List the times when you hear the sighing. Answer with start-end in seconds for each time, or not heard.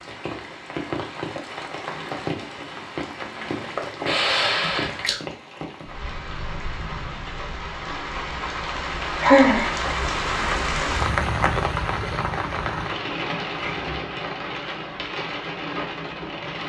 4.0-5.2, 9.2-9.8.